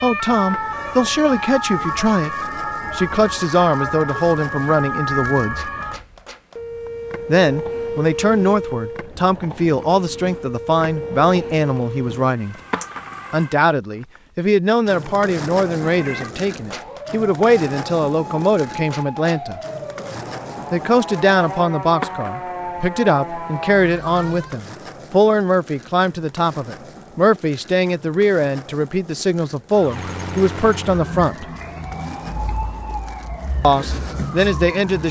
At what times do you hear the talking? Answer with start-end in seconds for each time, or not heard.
0.0-5.7, 7.2-12.6, 13.3-19.6, 20.7-31.4, 33.6-35.0.